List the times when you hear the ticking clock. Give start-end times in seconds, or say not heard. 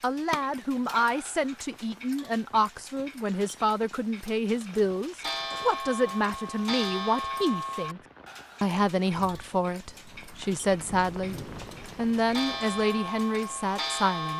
0.0-14.3.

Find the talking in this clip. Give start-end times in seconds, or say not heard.
0.0-8.0, 8.6-11.3, 11.9-14.3.